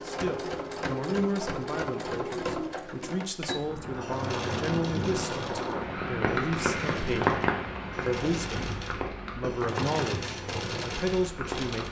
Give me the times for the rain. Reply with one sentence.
You can hear the rain from 3.5 to 11.8 s.